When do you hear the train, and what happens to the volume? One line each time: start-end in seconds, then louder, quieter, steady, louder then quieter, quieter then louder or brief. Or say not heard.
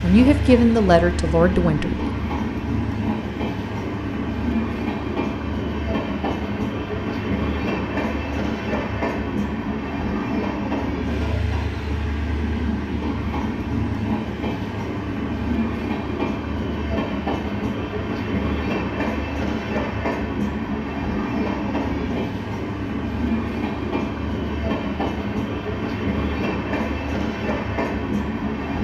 0.0-28.7 steady.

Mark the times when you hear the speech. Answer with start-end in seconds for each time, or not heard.
0.0-2.0.